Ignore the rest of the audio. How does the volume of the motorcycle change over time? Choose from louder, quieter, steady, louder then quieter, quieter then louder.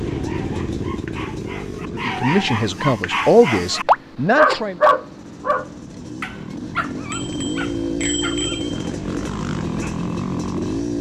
quieter then louder.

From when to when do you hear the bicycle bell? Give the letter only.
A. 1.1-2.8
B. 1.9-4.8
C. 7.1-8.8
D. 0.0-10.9
C.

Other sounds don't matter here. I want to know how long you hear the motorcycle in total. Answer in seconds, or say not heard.
11 s.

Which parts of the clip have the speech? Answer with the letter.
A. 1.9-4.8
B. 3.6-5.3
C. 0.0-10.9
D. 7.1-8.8
A.